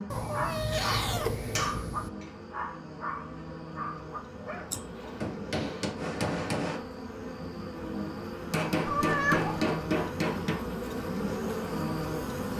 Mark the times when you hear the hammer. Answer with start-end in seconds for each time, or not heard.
0.8-2.3, 4.7-6.8, 8.5-10.6.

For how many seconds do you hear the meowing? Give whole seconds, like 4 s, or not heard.
3 s.